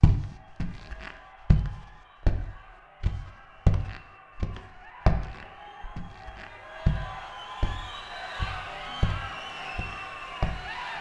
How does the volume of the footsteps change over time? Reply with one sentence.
The volume of the footsteps goes down.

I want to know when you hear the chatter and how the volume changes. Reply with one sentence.
The chatter can be heard from 0.1 to 10.9 s, getting louder.